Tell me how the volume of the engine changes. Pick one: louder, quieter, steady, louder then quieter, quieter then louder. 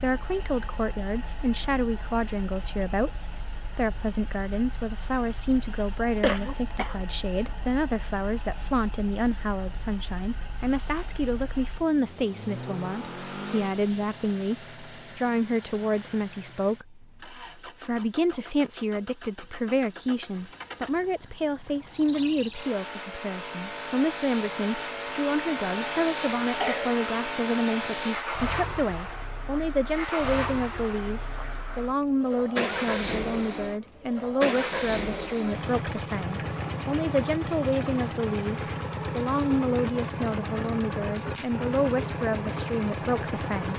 louder.